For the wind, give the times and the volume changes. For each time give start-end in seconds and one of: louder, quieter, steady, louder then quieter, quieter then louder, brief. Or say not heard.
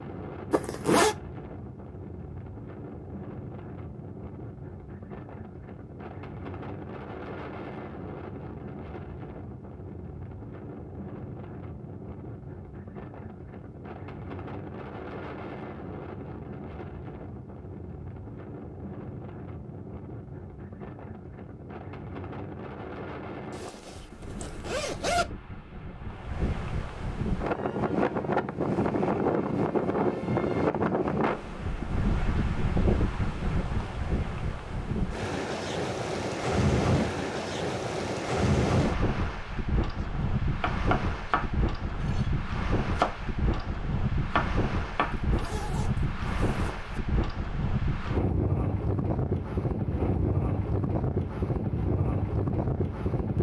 0.0-53.3 louder.